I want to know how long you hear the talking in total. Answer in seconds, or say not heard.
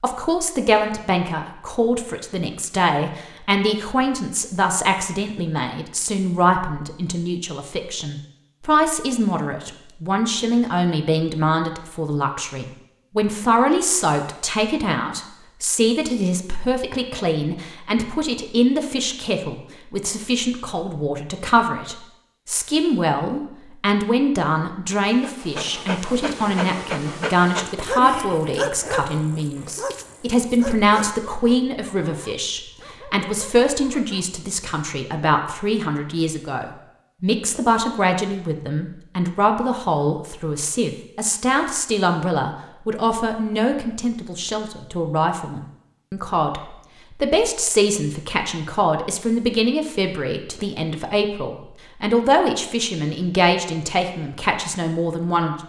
55 s.